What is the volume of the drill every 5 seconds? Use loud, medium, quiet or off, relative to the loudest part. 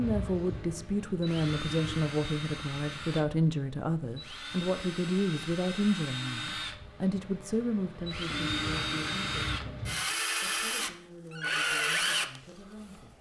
medium, medium, loud.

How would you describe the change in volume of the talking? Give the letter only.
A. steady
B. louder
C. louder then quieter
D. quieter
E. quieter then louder
D.